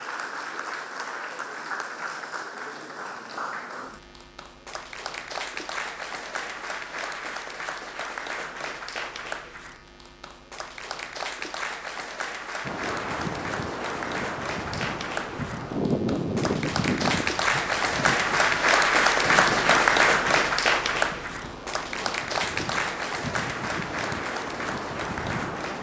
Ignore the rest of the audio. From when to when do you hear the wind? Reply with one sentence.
You can hear the wind from 12.7 to 25.7 s.